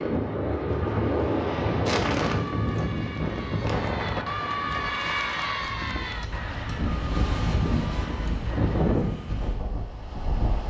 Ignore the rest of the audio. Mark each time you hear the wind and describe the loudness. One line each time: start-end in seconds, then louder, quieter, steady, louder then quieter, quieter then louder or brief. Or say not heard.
0.0-10.6 quieter then louder.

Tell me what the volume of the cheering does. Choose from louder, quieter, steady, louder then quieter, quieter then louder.
louder then quieter.